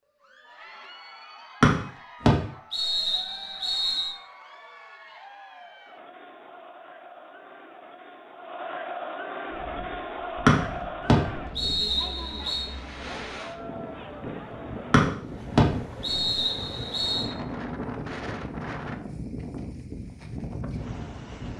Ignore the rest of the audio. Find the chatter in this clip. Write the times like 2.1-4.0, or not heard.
0.1-15.1.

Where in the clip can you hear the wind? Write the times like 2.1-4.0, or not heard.
9.4-21.5.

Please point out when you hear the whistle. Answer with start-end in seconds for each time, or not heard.
1.6-4.1, 10.4-12.7, 14.9-17.3.